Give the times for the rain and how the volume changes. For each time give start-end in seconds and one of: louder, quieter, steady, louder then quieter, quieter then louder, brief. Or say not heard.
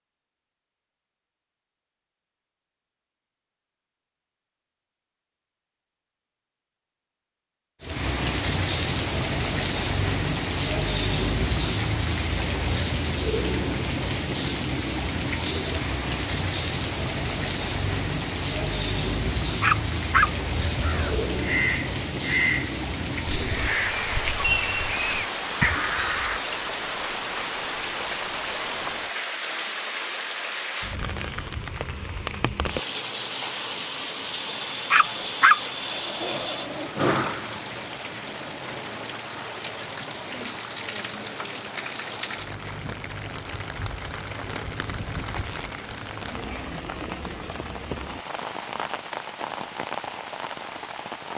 7.8-51.3 quieter.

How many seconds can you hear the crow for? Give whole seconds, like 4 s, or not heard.
6 s.